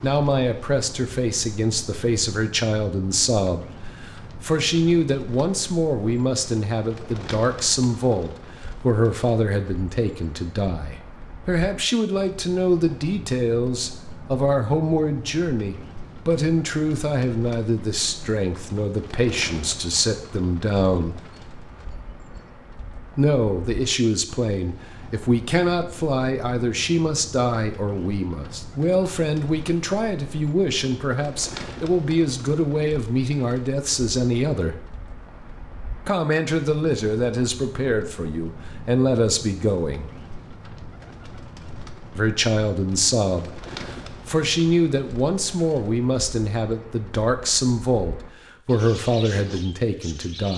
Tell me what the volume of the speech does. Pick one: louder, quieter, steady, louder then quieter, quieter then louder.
steady.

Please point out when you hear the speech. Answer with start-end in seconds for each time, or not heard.
0.0-21.1, 23.1-34.9, 36.0-40.2, 42.1-50.5.